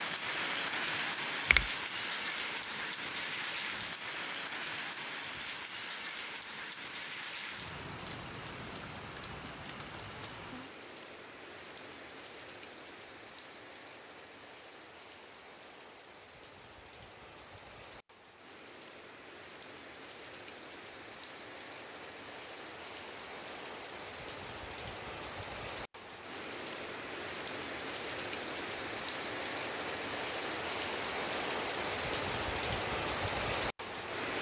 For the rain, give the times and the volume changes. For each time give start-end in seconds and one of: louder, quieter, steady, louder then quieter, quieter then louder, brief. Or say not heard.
0.0-34.3 quieter then louder.